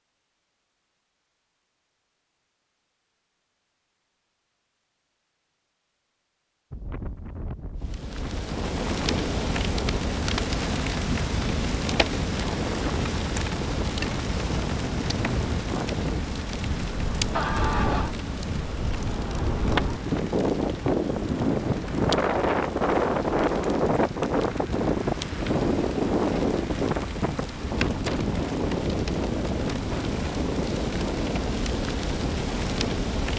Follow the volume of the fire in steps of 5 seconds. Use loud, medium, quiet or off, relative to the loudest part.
off, loud, loud, loud, medium, medium, loud.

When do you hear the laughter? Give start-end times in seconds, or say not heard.
17.4-18.1.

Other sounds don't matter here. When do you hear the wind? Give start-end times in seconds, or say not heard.
6.7-33.3.